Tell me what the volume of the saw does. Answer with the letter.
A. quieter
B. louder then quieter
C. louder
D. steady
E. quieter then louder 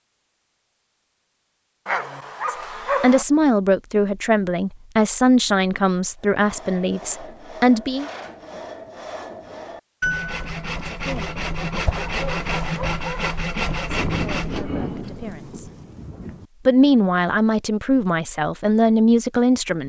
C.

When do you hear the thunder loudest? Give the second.
15 s.